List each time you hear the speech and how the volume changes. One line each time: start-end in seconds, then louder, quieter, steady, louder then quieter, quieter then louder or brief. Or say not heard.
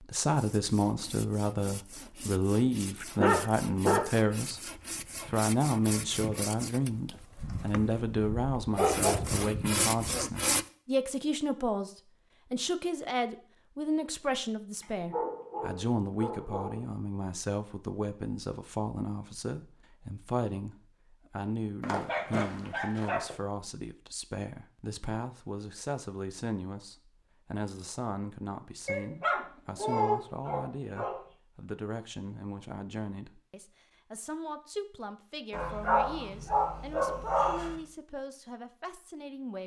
0.0-11.9 steady
12.5-39.6 quieter.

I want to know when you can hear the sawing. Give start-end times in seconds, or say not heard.
0.3-10.7.